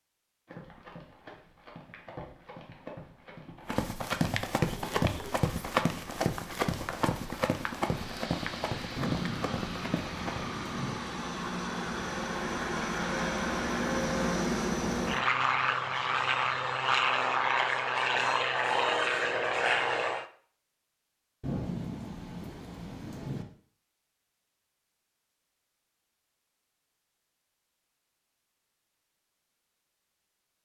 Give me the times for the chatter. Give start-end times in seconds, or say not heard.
not heard.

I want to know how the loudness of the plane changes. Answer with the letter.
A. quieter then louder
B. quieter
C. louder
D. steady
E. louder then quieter
C.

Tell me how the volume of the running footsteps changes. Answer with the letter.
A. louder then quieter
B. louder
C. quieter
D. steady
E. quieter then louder
A.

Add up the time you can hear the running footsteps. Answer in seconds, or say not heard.
10 s.